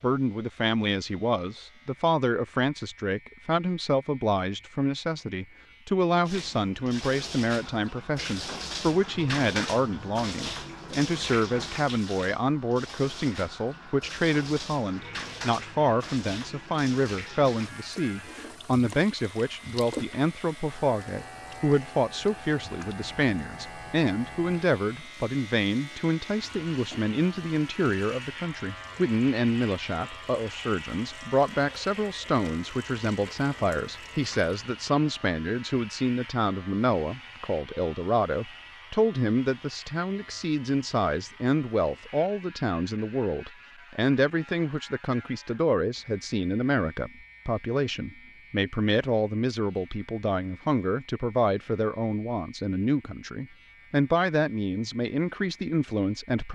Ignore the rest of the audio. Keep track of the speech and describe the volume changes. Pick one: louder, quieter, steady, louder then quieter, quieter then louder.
steady.